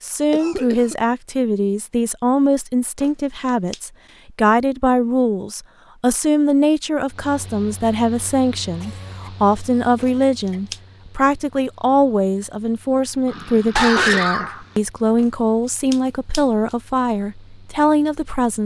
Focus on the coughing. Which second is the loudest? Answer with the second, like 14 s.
14 s.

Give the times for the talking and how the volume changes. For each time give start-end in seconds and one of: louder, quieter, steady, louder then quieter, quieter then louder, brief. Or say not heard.
0.0-18.6 steady.